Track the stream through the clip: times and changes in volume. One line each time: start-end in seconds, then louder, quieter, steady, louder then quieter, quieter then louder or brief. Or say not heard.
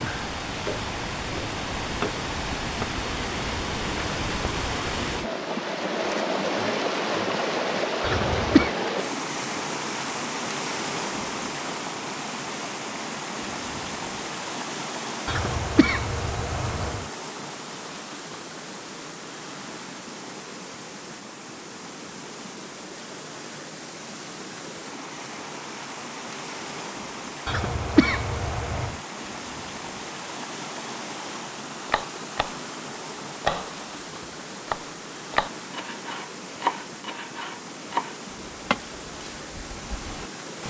0.0-40.6 quieter.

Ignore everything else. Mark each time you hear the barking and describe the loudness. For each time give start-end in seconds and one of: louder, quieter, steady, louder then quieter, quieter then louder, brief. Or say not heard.
not heard.